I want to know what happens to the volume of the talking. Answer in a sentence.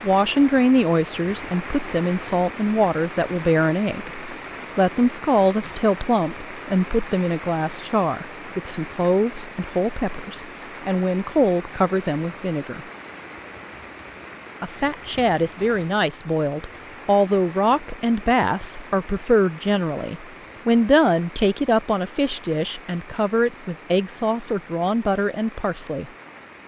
The loudness of the talking stays about the same.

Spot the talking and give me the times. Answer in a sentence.
The talking can be heard from 0.0 to 12.8 s and from 14.6 to 26.1 s.